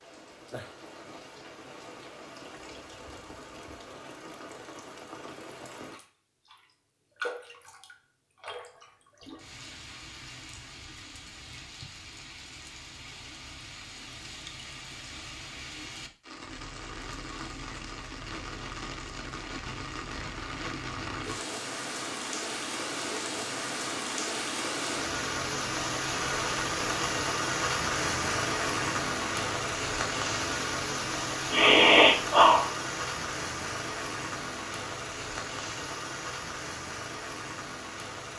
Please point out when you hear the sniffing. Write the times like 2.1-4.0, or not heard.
31.5-32.6.